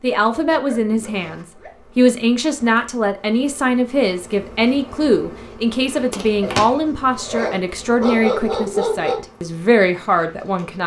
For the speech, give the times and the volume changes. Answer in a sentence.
You can hear the speech from 0.0 to 10.8 s, at a steady volume.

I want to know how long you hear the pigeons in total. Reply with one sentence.
The pigeons can't be heard in this clip.